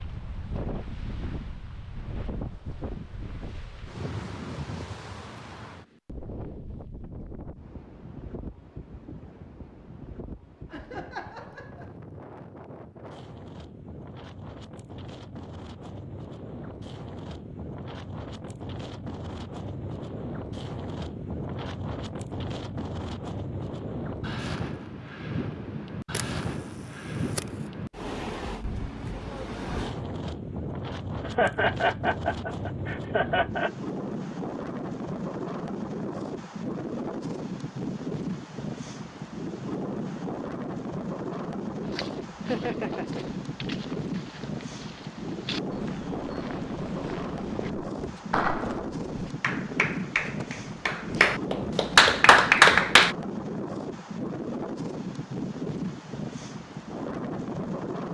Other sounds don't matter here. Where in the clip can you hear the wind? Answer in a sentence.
The wind can be heard from 0.0 to 58.0 s.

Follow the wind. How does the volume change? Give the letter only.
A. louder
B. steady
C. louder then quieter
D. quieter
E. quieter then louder
A.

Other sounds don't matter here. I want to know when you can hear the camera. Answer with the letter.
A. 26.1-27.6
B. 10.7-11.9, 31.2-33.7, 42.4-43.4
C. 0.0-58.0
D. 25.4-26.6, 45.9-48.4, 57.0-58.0
A.